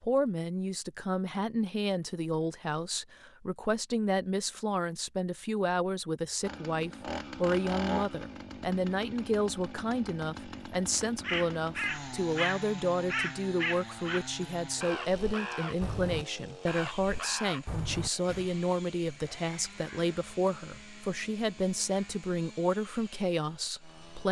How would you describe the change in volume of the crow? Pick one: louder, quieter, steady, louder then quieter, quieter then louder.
quieter.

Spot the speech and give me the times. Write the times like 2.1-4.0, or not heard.
0.0-24.2.